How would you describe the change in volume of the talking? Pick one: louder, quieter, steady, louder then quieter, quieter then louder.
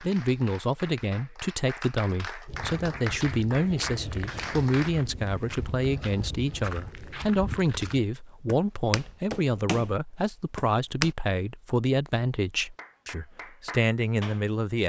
steady.